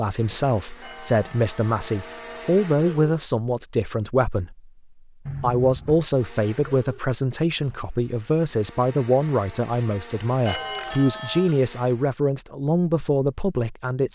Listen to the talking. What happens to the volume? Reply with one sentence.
The volume of the talking stays about the same.